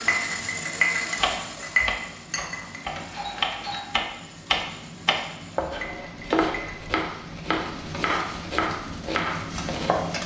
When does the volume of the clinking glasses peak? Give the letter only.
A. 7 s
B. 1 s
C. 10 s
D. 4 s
B.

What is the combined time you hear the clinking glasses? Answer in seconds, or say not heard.
4 s.